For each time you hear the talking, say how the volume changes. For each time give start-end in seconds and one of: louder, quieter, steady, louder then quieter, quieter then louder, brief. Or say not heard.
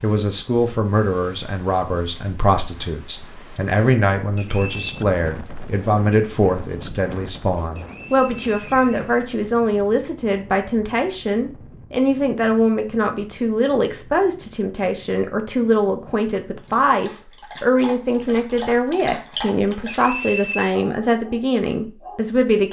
0.0-22.6 steady.